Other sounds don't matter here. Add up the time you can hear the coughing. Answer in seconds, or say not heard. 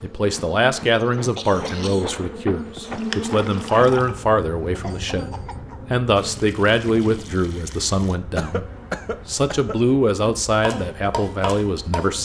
3 s.